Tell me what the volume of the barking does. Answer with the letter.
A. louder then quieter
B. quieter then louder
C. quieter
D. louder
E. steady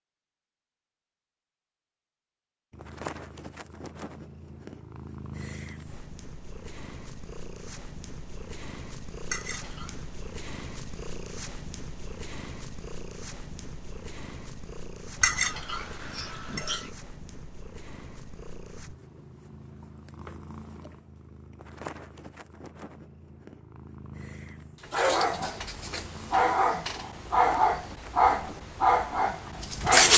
D.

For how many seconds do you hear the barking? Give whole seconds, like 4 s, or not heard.
5 s.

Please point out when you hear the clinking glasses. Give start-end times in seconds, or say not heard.
9.2-10.0, 15.2-16.9.